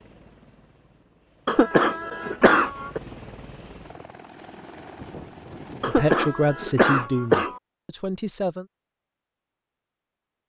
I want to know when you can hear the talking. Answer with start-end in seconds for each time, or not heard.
5.8-8.7.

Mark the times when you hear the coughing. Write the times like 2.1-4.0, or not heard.
1.4-3.0, 5.8-7.6.